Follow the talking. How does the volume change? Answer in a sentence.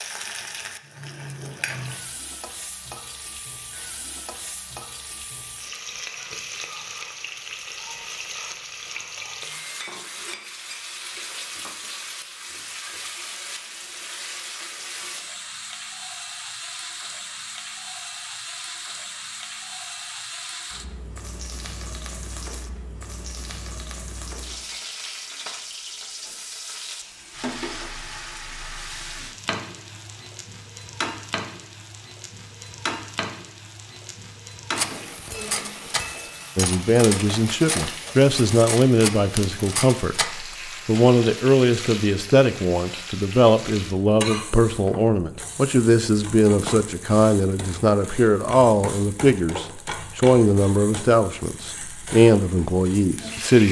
The volume of the talking stays about the same.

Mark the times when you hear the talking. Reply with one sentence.
The talking can be heard from 36.5 to 53.6 s.